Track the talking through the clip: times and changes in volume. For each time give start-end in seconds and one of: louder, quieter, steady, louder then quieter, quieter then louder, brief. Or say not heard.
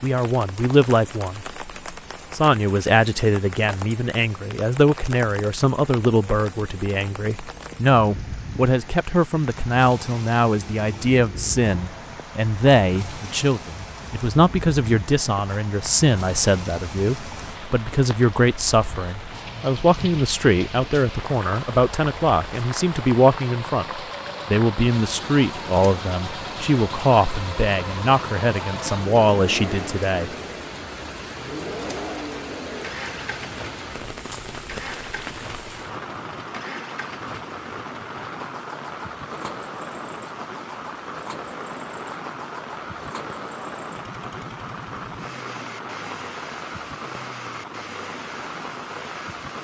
0.0-1.6 brief
2.3-30.3 steady.